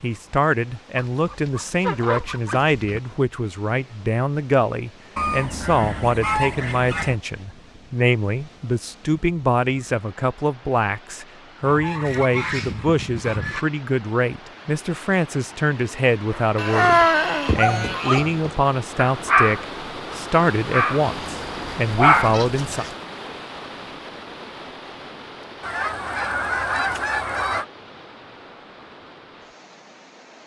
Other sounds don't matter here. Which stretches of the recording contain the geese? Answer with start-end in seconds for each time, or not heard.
0.9-3.0, 5.2-7.2, 11.6-13.7, 16.6-18.3, 21.2-22.9, 25.6-27.6.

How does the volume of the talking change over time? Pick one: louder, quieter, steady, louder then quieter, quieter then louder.
steady.